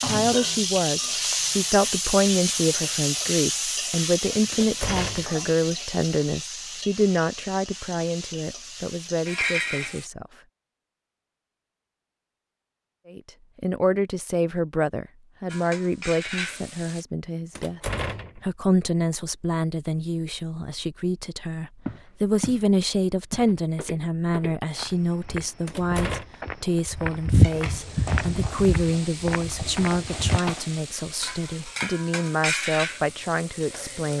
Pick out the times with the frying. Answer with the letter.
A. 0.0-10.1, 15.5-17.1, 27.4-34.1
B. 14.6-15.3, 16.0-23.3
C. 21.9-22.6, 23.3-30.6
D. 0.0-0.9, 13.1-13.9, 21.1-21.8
A.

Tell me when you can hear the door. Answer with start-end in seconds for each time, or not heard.
4.5-5.4, 17.6-18.4, 25.6-26.2.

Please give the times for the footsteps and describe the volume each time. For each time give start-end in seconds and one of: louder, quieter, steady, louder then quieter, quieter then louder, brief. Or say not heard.
21.9-22.6 brief
23.3-30.6 louder then quieter.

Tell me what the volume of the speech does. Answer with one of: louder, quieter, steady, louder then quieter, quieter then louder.
steady.